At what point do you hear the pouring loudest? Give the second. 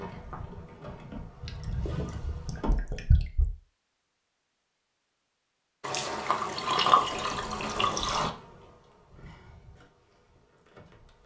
7 s.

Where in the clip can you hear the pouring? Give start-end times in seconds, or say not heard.
1.4-3.5, 5.8-8.3.